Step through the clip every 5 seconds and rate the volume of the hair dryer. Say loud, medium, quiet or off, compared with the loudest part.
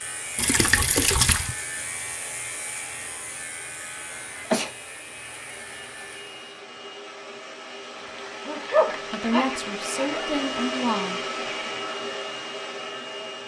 quiet, medium, loud.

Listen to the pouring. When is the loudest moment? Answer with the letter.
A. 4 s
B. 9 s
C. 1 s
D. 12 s
C.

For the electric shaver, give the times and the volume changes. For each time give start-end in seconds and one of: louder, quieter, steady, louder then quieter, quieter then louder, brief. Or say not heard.
0.0-6.4 quieter.